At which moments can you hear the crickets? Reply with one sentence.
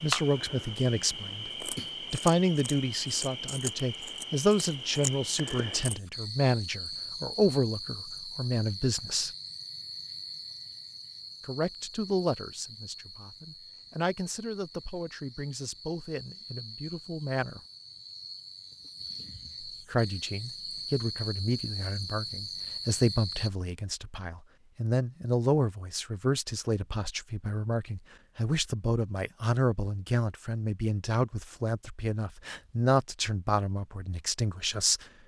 You can hear the crickets from 0.0 to 23.5 s.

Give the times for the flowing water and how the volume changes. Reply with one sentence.
The flowing water can't be heard in this clip.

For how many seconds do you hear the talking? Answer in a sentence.
You can hear the talking for 31 seconds altogether.